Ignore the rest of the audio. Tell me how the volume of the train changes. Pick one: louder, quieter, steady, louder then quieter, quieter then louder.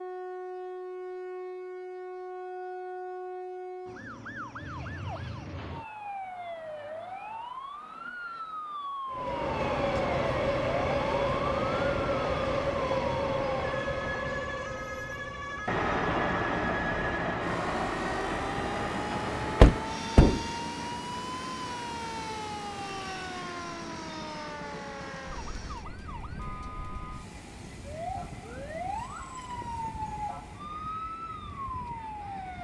quieter.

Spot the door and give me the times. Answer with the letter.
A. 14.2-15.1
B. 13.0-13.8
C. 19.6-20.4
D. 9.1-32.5
C.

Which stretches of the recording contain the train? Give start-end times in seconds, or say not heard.
9.1-32.5.